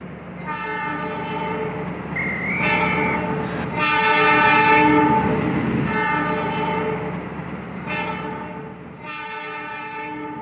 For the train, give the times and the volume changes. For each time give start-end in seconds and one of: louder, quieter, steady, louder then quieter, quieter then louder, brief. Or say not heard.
0.0-10.3 louder then quieter.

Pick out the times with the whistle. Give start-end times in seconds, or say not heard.
2.1-3.6.